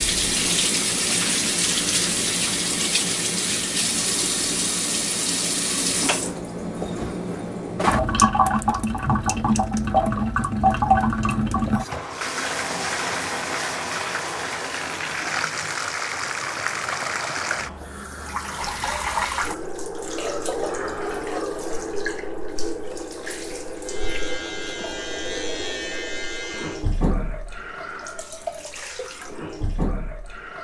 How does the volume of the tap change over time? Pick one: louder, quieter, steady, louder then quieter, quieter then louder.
quieter.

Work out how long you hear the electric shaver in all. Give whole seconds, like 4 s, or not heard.
3 s.